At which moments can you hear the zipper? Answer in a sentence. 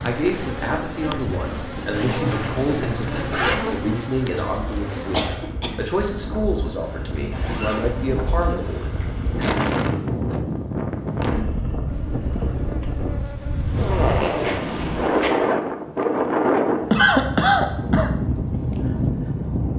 The zipper can be heard from 1.9 to 3.6 s, from 7.3 to 8.8 s and from 13.8 to 15.3 s.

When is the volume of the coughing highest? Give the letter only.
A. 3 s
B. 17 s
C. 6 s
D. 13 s
B.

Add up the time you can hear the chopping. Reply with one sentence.
The chopping can't be heard in this clip.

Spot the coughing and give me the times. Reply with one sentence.
The coughing can be heard from 5.1 to 5.8 s and from 16.9 to 18.1 s.